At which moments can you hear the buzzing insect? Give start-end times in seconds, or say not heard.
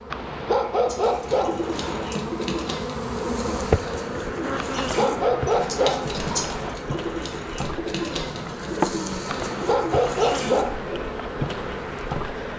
0.0-12.5.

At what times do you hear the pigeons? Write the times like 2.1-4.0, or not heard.
0.8-11.2.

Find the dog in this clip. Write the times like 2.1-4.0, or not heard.
0.1-2.2, 4.5-6.8, 9.2-10.8.